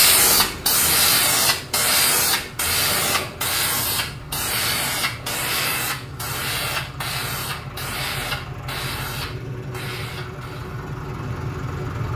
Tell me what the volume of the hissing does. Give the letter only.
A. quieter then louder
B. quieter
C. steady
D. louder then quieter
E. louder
B.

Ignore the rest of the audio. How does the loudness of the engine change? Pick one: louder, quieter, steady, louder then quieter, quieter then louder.
louder.